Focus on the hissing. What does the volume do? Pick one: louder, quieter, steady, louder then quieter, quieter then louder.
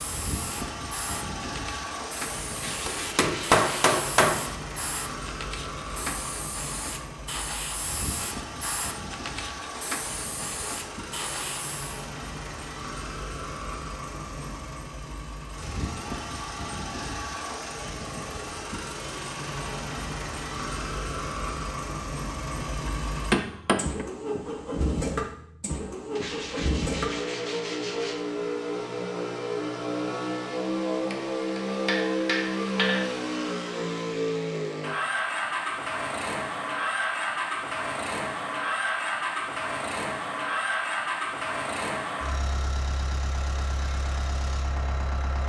steady.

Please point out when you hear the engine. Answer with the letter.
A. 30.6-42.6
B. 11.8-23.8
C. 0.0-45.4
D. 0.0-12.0
C.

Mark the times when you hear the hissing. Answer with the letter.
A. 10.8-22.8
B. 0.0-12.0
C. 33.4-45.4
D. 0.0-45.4
B.